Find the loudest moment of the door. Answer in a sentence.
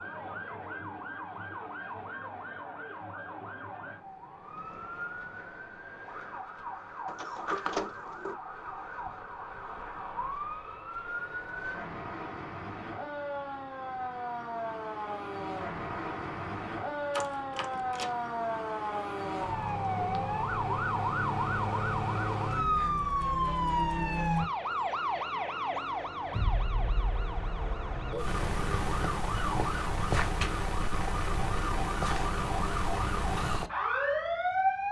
The volume of the door peaks at 8 seconds.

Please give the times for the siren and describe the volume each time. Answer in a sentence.
You can hear the siren from 0.0 to 34.8 s, getting louder.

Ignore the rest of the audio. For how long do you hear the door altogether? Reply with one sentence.
You can hear the door for 3 seconds altogether.